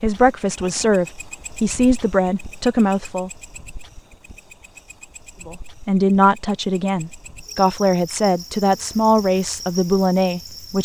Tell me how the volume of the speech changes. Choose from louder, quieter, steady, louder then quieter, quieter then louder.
steady.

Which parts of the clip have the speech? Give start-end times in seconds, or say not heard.
0.0-3.3, 5.5-10.8.